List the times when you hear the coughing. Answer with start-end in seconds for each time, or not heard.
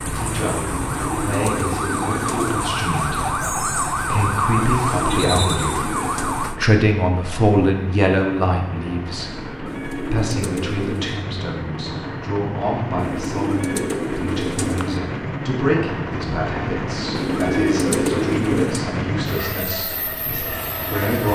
not heard.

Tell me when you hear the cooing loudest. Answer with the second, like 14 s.
18 s.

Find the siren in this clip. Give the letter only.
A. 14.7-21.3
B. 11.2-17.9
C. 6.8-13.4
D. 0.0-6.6
D.